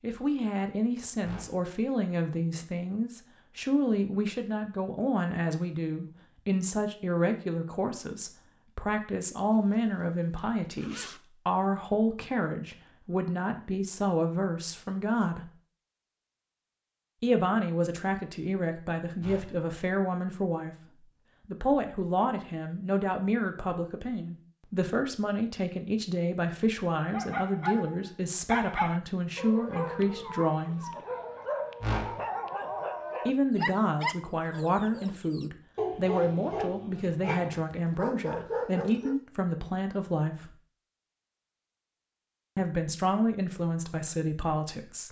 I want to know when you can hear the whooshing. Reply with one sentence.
You can hear the whooshing from 1.2 to 1.6 s, from 19.2 to 19.6 s and from 31.8 to 32.2 s.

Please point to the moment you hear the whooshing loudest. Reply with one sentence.
The volume of the whooshing peaks at 32 seconds.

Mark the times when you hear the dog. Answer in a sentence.
The dog can be heard from 27.1 to 39.2 s.